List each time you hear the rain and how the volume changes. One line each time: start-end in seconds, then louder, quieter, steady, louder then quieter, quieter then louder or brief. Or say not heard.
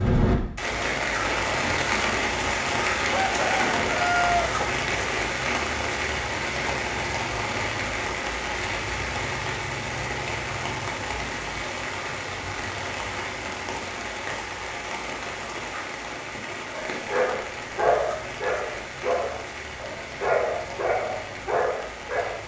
0.0-22.4 quieter.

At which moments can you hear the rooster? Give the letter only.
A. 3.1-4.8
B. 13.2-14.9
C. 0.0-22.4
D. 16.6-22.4
A.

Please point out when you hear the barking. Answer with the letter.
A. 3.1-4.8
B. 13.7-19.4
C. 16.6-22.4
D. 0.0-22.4
C.